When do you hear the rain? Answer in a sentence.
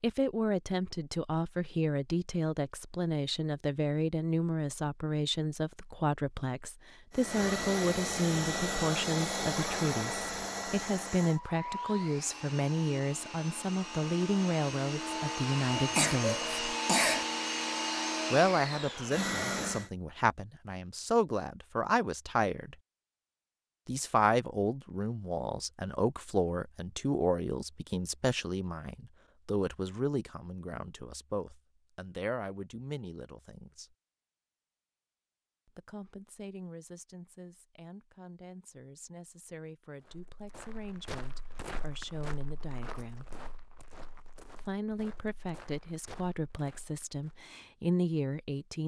The rain can't be heard in this clip.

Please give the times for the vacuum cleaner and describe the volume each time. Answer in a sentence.
The vacuum cleaner can be heard from 7.1 to 19.9 s, getting quieter then louder.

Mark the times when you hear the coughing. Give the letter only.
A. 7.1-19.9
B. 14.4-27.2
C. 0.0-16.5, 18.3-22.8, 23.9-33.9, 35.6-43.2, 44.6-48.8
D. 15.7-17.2
D.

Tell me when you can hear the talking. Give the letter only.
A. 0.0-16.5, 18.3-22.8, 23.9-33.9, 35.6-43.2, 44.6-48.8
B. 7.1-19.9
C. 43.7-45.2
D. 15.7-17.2
A.